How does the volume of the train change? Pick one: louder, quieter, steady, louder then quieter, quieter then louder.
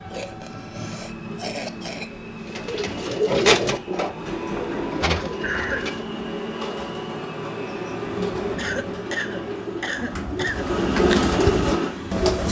louder.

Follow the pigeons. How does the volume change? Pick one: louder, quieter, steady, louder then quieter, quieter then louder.
quieter then louder.